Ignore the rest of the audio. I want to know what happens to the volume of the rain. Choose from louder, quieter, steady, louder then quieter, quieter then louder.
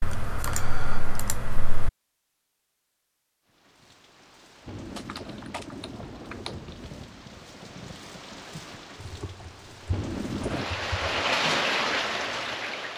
louder.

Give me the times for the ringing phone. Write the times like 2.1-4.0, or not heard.
not heard.